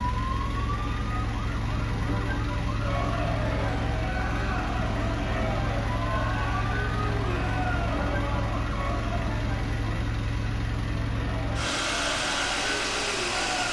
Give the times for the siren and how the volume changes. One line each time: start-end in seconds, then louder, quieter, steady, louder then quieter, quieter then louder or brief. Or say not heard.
0.0-10.1 steady.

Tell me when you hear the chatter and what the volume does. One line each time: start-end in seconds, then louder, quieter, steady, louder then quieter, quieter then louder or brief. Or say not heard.
2.8-13.6 quieter then louder.